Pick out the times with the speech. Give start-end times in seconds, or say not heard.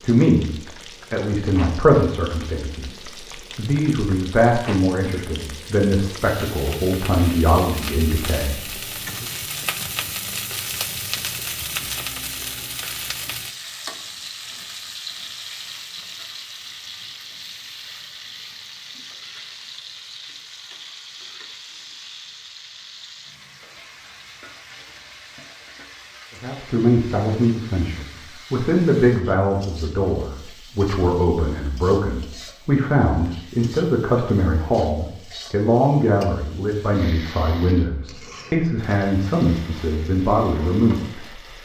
0.0-9.2, 26.4-41.6.